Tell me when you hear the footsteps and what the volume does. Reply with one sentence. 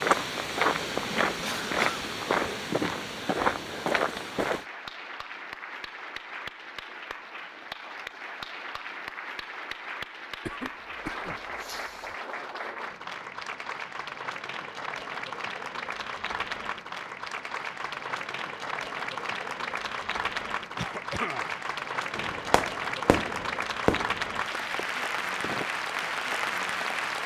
The footsteps can be heard from 0.0 to 4.7 s, at a steady volume.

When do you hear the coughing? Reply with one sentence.
The coughing can be heard from 1.4 to 2.0 s, from 10.4 to 12.2 s and from 20.8 to 21.6 s.